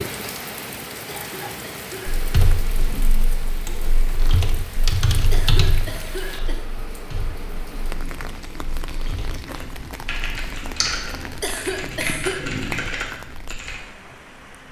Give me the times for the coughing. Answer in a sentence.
You can hear the coughing from 1.1 to 2.1 s, from 5.3 to 6.7 s and from 11.4 to 12.4 s.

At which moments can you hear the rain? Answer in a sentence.
You can hear the rain from 0.0 to 14.6 s.